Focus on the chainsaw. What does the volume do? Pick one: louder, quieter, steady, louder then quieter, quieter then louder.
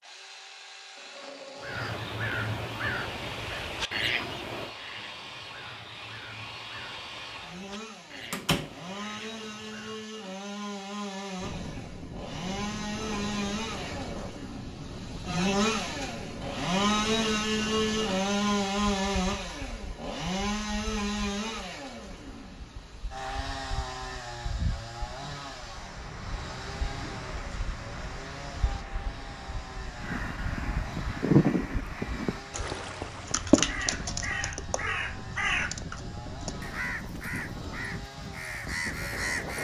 louder then quieter.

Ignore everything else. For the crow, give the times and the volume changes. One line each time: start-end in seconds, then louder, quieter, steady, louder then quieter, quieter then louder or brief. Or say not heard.
1.6-10.1 quieter
30.0-39.6 quieter.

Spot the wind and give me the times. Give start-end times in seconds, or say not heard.
11.3-39.6.